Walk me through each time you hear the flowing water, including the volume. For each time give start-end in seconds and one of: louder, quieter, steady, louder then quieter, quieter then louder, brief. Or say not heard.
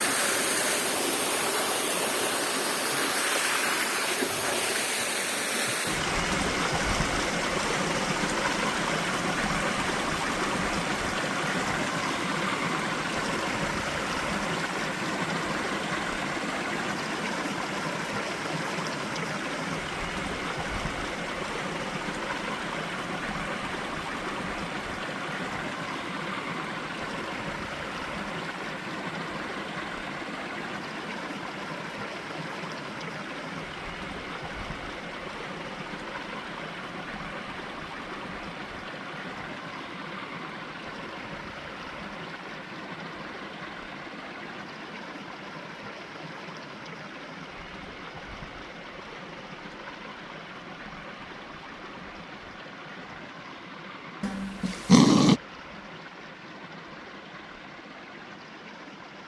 0.0-59.2 quieter.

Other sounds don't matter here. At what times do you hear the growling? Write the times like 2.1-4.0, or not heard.
54.2-55.4.